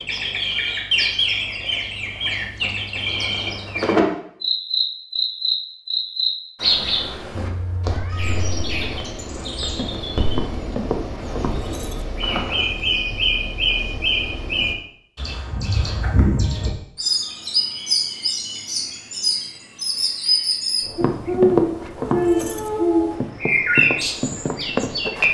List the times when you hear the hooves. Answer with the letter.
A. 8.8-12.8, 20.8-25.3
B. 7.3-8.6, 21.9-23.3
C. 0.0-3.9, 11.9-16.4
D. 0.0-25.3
A.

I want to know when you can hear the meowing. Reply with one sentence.
The meowing can be heard from 7.3 to 8.6 s and from 21.9 to 23.3 s.